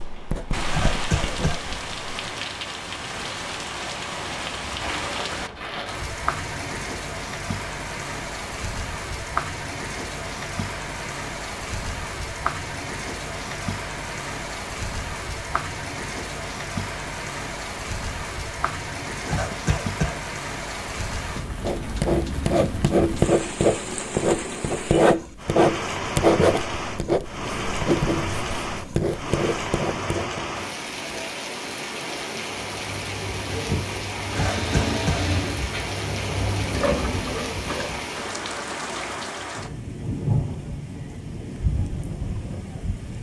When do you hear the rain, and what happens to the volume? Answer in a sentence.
The rain can be heard from 0.0 to 43.1 s, at a steady volume.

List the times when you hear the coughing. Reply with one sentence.
The coughing can be heard from 0.7 to 1.6 s, from 19.2 to 20.1 s and from 34.4 to 35.2 s.